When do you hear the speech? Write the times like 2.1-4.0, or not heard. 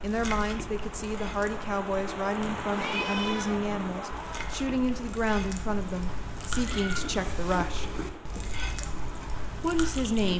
0.0-8.0, 9.6-10.3.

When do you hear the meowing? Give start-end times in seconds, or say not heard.
2.7-3.5, 6.6-8.1.